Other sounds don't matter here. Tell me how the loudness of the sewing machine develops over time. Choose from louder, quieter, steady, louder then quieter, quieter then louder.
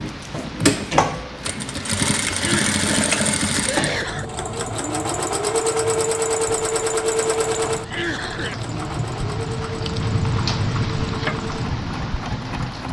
quieter.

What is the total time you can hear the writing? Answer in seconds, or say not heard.
not heard.